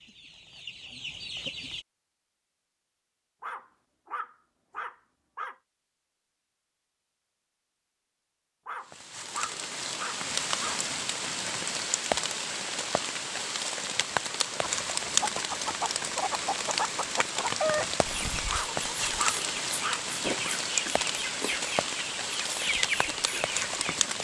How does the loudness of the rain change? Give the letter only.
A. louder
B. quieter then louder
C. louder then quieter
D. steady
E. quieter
D.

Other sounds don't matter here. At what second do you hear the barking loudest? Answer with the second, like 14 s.
19 s.